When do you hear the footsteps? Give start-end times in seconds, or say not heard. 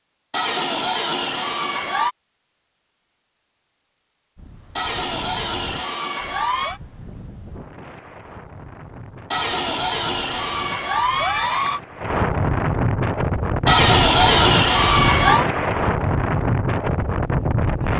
not heard.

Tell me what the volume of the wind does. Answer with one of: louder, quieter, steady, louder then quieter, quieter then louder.
louder.